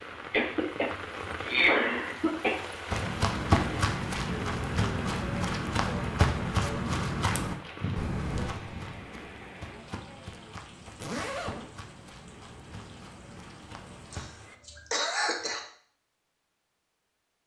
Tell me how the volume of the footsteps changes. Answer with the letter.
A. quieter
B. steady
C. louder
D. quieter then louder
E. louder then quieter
A.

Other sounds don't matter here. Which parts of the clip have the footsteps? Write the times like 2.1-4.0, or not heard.
2.9-14.3.